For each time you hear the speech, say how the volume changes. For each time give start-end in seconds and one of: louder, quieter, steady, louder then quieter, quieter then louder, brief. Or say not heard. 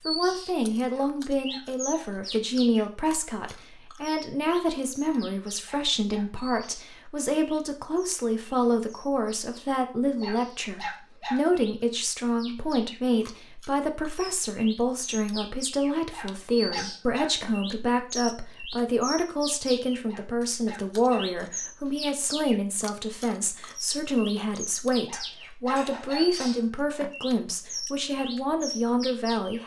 0.1-29.6 steady.